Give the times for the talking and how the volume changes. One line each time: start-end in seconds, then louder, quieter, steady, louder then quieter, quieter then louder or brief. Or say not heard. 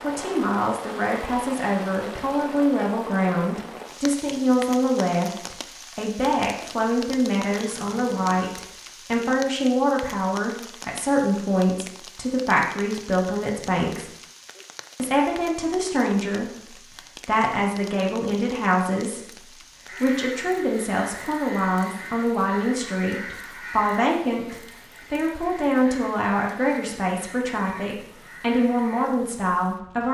0.0-14.1 steady
14.9-30.0 steady.